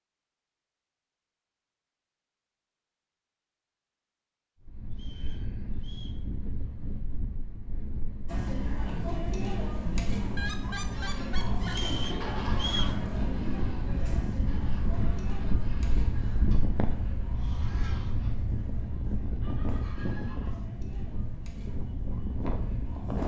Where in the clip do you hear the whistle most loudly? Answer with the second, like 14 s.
13 s.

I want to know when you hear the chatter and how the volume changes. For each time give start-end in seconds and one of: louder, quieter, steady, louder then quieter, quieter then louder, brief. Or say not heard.
8.2-23.2 quieter.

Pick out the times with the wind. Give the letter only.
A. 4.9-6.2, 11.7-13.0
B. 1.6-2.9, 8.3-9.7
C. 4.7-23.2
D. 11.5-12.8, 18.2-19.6
C.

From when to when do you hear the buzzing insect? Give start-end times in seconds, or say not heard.
not heard.